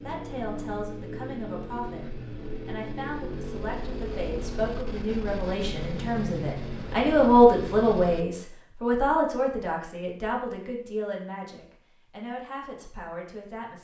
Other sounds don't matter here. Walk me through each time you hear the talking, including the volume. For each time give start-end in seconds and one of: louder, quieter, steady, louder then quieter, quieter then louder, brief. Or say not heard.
0.0-13.8 louder then quieter.